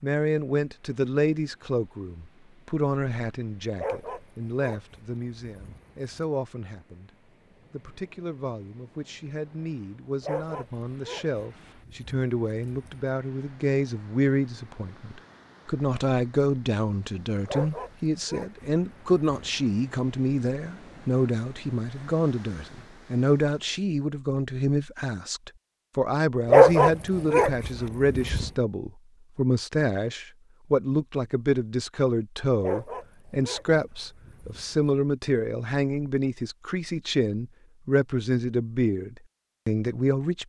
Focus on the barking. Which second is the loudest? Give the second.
27 s.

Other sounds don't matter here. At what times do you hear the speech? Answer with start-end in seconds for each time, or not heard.
0.0-40.4.